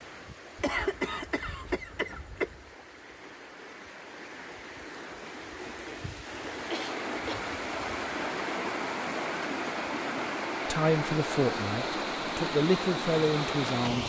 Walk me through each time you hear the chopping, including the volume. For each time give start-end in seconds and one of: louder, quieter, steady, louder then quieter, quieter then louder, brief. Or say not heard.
not heard.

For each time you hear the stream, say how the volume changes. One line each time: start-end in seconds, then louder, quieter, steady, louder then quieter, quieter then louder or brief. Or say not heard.
0.0-14.0 louder.